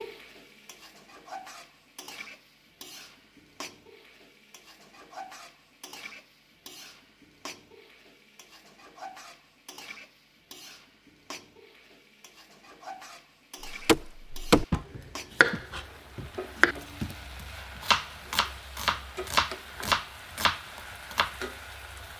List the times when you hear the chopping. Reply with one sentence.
The chopping can be heard from 13.7 to 21.4 s.